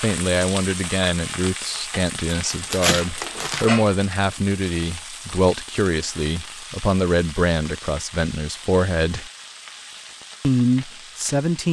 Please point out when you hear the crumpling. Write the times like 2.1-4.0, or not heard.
2.5-3.7.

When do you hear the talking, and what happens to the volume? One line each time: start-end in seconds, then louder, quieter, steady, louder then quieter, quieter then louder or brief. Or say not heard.
0.0-9.3 steady
10.4-11.6 brief.